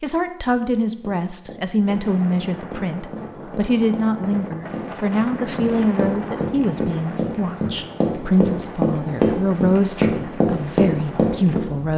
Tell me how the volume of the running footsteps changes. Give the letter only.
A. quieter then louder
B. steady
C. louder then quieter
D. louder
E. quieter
D.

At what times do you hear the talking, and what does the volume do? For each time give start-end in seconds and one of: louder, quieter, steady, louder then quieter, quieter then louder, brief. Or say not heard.
0.0-11.9 steady.